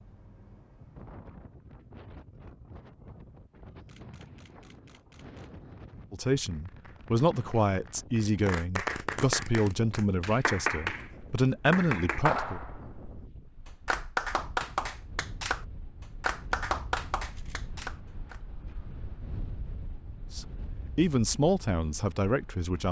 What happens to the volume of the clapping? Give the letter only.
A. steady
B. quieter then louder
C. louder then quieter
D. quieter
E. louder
E.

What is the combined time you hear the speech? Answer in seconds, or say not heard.
9 s.